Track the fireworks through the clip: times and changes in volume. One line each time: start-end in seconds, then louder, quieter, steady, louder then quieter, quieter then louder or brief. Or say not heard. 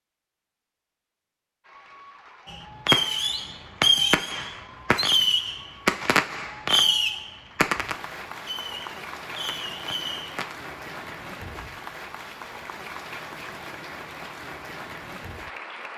2.5-10.6 quieter.